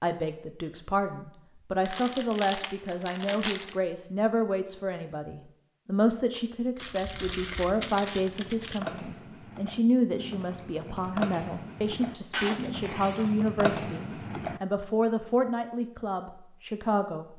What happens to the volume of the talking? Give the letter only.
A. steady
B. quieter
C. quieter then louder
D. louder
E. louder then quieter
A.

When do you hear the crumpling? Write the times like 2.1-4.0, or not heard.
1.9-3.8, 6.8-8.8, 12.3-13.5.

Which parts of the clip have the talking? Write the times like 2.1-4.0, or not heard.
0.0-17.3.